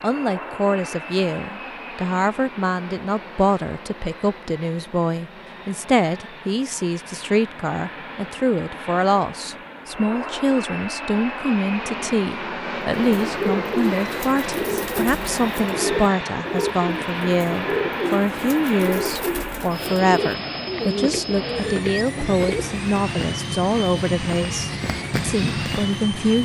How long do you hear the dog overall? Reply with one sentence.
The dog can't be heard in this clip.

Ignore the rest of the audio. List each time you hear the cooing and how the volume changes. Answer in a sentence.
The cooing can be heard from 12.9 to 22.8 s, at a steady volume.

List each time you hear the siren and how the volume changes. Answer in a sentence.
You can't hear the siren here.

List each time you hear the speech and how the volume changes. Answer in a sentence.
The speech can be heard from 0.0 to 26.4 s, at a steady volume.